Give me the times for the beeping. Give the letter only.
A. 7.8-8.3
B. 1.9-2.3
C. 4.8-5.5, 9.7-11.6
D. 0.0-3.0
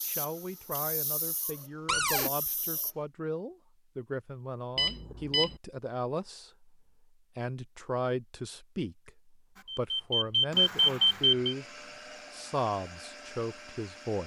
C.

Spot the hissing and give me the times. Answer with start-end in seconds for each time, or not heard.
0.0-3.0.